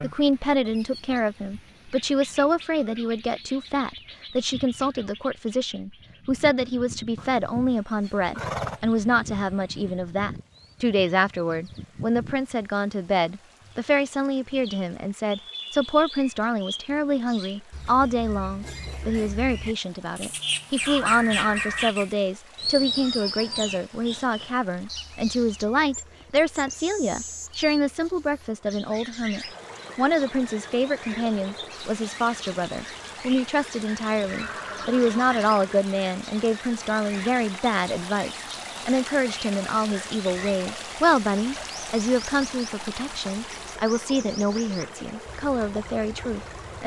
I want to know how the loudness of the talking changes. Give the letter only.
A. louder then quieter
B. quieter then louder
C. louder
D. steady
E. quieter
D.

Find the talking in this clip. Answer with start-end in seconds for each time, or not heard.
0.0-46.8.